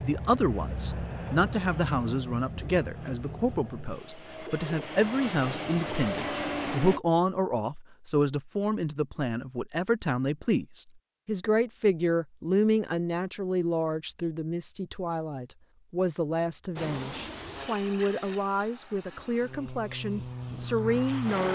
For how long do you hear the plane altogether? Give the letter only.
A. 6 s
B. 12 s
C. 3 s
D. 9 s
B.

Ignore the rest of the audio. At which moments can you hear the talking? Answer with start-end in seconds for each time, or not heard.
0.0-21.5.